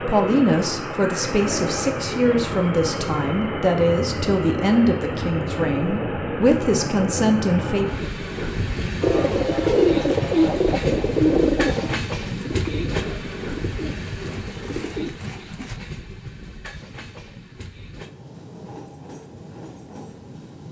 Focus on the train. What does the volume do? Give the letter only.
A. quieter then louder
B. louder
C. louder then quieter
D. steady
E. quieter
E.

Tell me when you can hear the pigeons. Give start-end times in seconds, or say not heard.
9.0-15.8.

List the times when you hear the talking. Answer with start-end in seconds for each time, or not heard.
0.0-7.9.